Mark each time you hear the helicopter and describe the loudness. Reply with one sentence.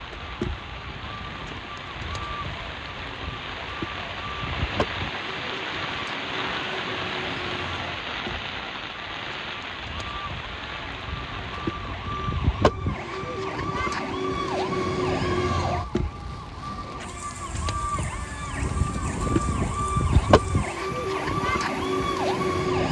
The helicopter can't be heard in this clip.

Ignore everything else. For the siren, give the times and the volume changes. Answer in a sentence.
The siren can be heard from 0.0 to 22.8 s, getting louder.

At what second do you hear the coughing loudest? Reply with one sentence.
The loudest moment of the coughing is at 19 seconds.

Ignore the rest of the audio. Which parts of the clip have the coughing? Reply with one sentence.
The coughing can be heard from 0.8 to 1.8 s, from 11.2 to 12.3 s and from 18.6 to 20.3 s.